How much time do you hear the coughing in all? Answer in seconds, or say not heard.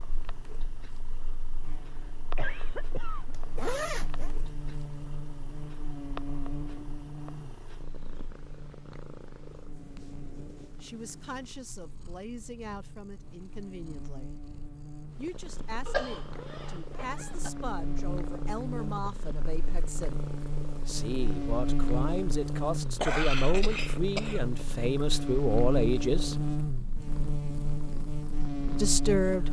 5 s.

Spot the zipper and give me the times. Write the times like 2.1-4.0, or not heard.
3.3-4.3, 16.2-17.6.